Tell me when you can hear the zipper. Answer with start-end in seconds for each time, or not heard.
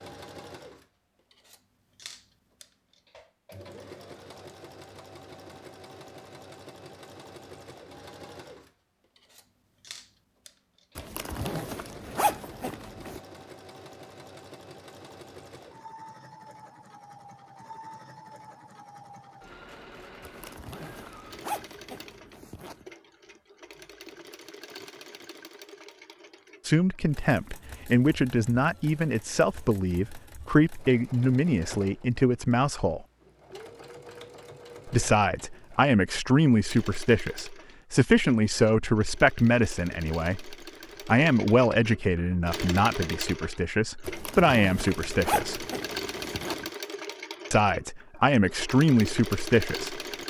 10.9-13.2, 20.2-22.9, 44.0-46.6.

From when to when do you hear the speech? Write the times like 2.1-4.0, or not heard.
26.6-33.0, 34.9-45.6, 47.5-50.0.